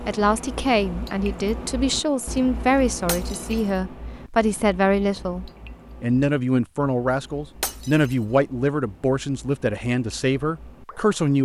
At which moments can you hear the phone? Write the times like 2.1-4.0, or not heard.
not heard.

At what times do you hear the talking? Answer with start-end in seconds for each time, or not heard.
0.0-11.4.